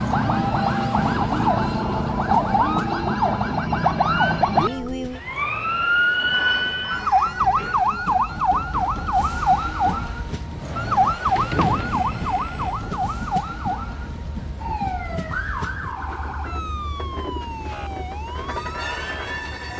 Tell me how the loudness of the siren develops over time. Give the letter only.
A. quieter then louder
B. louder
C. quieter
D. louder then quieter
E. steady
C.